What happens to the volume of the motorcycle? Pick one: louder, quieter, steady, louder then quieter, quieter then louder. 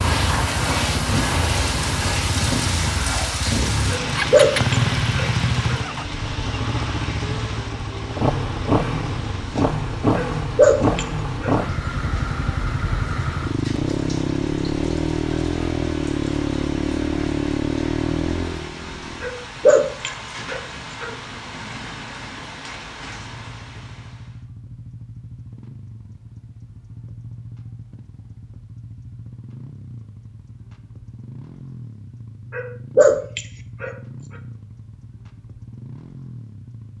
quieter.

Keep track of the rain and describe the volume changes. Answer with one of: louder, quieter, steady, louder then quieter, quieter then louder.
quieter.